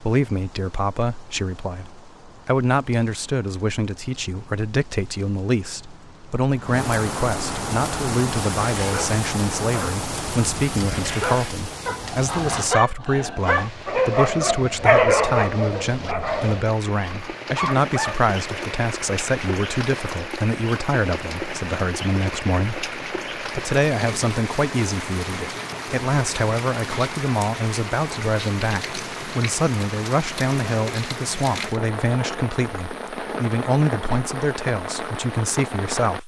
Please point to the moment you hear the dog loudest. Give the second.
15 s.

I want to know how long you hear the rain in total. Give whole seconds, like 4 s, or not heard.
36 s.